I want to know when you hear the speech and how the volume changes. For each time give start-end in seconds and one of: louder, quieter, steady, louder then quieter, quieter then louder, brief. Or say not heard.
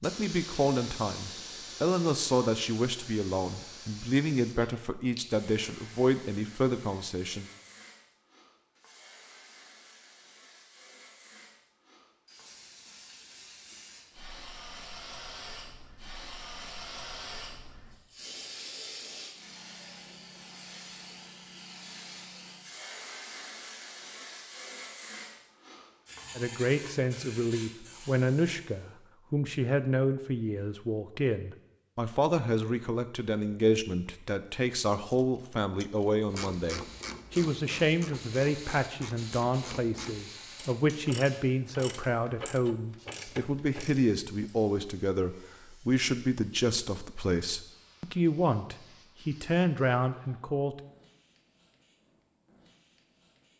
0.0-7.5 steady
26.4-50.8 steady.